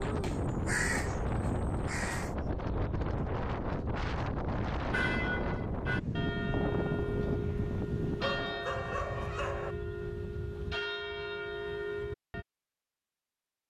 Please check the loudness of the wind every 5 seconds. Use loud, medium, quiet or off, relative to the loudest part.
loud, loud, off.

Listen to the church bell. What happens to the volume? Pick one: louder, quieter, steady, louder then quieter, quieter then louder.
steady.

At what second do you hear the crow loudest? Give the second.
1 s.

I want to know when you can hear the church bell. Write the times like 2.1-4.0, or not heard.
4.8-12.4.